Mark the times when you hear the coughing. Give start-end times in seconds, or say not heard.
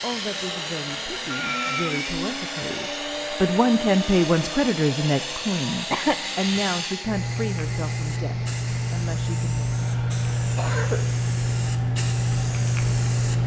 1.3-2.0, 5.9-7.0, 10.6-11.1.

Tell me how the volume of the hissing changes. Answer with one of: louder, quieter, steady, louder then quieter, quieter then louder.
louder.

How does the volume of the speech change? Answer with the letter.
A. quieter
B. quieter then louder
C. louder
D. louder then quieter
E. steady
D.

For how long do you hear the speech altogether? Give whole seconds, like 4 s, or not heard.
10 s.